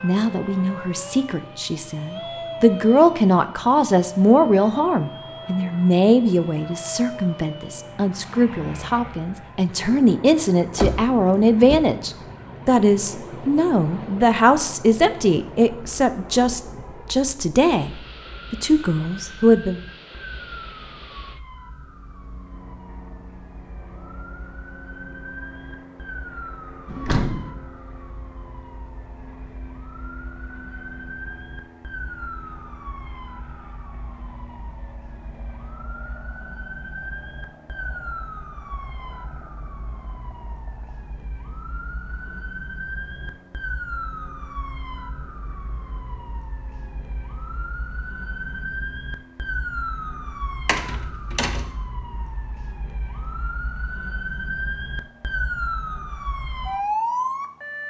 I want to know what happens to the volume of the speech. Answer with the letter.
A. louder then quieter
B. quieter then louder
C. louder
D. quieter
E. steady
E.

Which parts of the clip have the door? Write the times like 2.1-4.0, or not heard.
10.8-11.9, 26.9-27.6, 50.6-51.6.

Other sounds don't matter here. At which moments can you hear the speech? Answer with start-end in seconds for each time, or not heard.
0.0-19.8.